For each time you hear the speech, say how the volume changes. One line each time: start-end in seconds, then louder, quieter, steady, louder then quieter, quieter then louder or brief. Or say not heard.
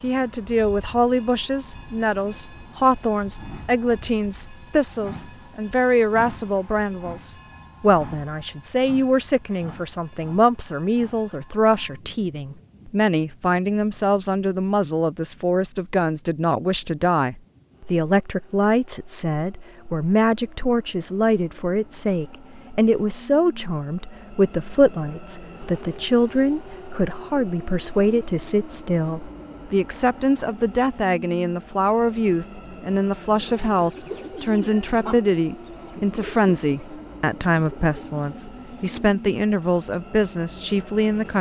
0.0-41.3 steady.